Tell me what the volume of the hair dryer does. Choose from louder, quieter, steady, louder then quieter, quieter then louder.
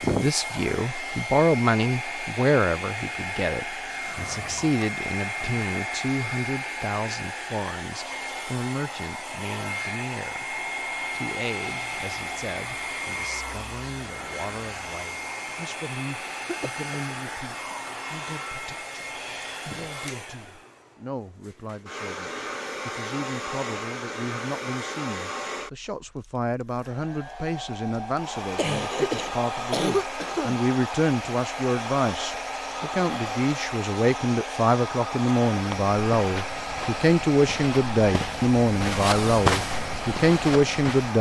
steady.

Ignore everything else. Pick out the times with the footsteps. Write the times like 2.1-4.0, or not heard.
35.6-41.1.